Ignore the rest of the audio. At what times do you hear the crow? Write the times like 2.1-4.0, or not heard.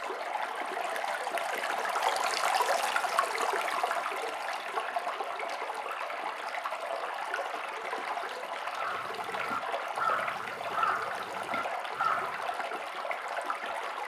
8.8-12.3.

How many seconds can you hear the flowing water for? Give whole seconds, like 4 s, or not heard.
14 s.